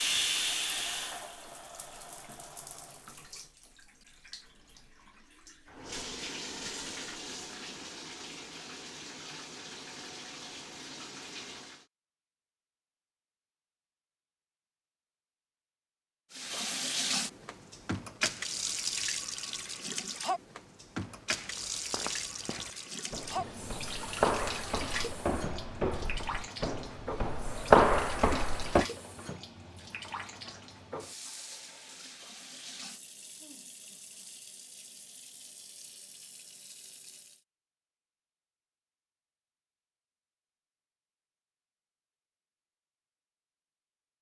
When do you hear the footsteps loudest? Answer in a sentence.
The loudest moment of the footsteps is at 28 seconds.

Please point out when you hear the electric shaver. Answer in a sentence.
You can't hear the electric shaver here.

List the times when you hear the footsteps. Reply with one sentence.
The footsteps can be heard from 21.2 to 28.9 s.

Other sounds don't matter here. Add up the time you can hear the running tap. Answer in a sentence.
You can hear the running tap for 33 seconds altogether.